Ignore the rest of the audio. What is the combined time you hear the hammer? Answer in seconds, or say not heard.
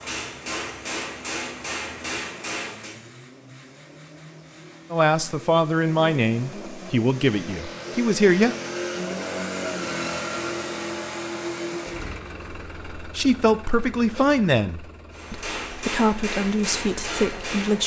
6 s.